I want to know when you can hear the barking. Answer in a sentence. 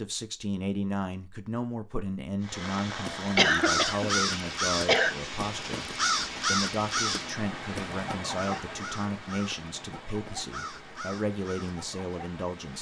You can't hear the barking here.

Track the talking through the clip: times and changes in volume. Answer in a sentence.
The talking can be heard from 0.0 to 12.7 s, at a steady volume.